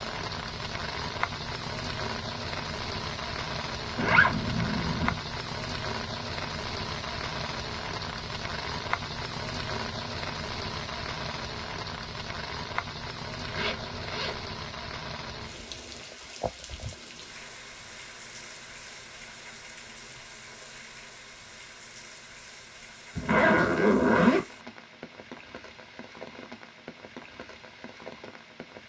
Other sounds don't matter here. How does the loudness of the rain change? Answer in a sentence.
The loudness of the rain goes down.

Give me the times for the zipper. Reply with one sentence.
You can hear the zipper from 4.0 to 5.2 s, from 13.4 to 14.4 s and from 23.1 to 24.4 s.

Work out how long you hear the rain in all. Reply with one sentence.
You can hear the rain for 29 seconds altogether.